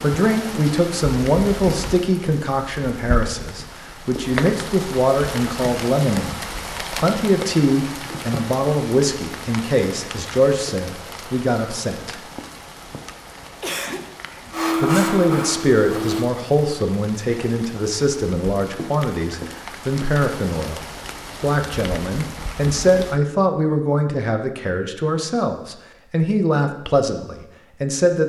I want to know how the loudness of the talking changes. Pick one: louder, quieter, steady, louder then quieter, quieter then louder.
steady.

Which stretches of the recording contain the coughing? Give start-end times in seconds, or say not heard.
13.6-14.5.